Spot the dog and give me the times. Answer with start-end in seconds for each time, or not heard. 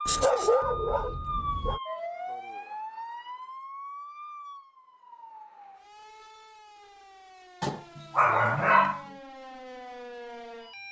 0.1-1.8, 7.6-9.0.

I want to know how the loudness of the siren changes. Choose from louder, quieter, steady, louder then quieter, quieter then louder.
quieter then louder.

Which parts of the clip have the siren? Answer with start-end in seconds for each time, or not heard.
0.0-10.8.